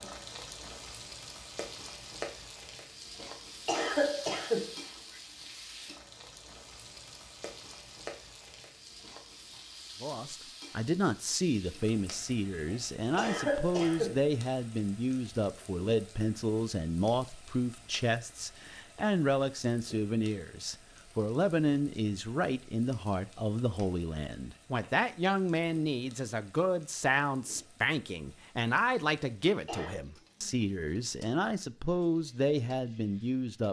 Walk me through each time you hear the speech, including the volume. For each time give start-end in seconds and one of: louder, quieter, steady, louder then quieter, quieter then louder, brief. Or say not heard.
10.0-33.6 steady.